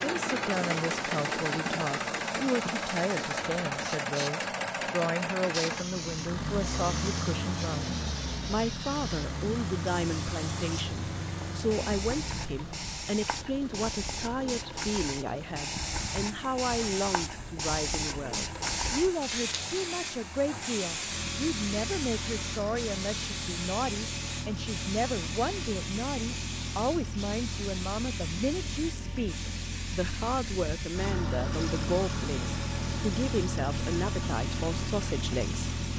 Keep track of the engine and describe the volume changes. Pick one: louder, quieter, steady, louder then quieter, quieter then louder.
quieter then louder.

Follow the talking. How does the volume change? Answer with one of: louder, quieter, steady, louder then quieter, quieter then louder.
steady.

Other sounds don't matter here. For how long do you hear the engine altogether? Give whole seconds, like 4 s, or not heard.
36 s.